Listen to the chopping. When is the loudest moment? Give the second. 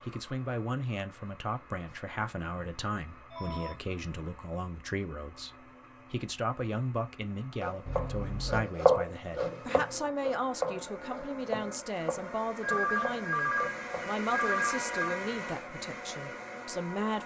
9 s.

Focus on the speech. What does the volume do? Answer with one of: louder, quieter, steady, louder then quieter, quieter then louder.
steady.